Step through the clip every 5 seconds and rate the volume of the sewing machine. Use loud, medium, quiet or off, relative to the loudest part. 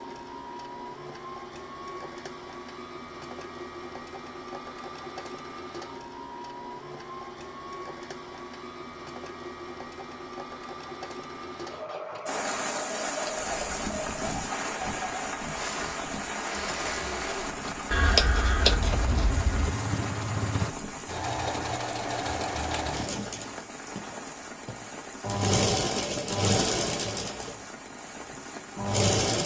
quiet, quiet, medium, medium, medium, loud.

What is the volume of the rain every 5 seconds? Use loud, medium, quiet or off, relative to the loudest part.
off, off, loud, loud, medium, medium.